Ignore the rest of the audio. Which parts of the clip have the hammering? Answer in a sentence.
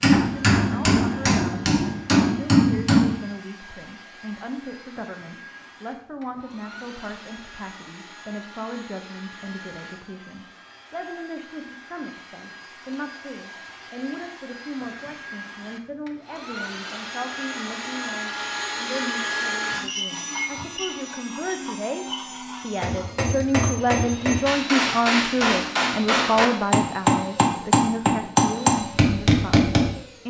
You can hear the hammering from 0.0 to 3.2 s and from 22.8 to 29.9 s.